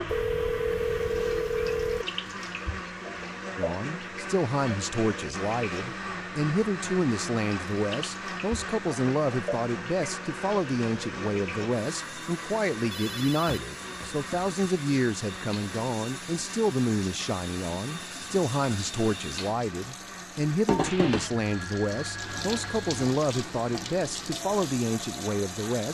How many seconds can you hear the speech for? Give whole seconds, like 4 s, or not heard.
22 s.